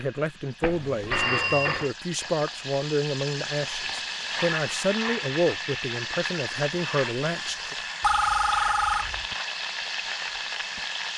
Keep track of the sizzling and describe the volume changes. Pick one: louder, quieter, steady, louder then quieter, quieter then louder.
louder.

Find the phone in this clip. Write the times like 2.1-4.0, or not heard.
0.6-1.9, 8.0-9.2.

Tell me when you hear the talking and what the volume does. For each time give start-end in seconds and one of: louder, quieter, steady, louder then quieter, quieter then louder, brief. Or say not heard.
0.0-7.8 steady.